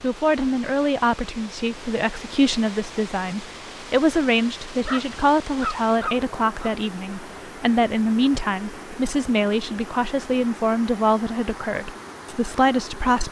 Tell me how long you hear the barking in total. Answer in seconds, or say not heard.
2 s.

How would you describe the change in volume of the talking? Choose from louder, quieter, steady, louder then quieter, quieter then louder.
steady.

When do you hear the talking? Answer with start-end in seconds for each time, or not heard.
0.0-13.2.